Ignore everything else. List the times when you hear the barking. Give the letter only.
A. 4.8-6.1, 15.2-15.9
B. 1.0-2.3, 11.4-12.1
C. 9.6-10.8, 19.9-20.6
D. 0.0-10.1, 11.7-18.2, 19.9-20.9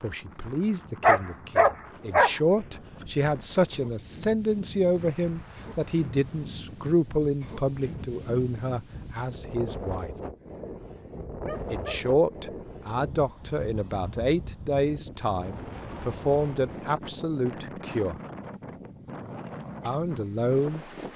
B.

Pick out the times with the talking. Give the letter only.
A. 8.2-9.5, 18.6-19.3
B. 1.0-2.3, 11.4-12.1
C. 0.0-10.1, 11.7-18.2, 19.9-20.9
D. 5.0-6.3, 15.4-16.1
C.